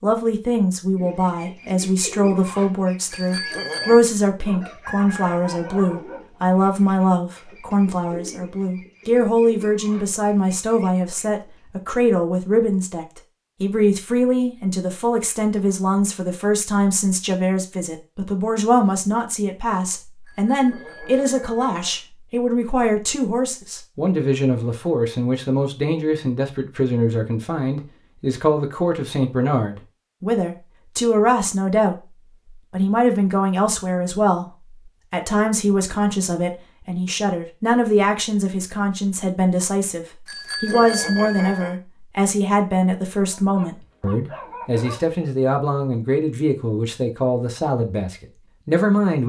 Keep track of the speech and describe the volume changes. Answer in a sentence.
The volume of the speech stays about the same.